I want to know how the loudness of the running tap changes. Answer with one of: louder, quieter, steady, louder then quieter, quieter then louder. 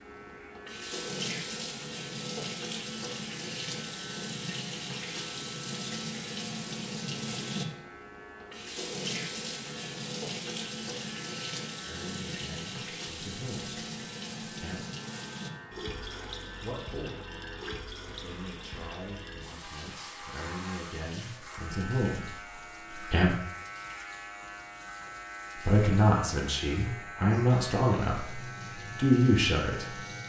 quieter.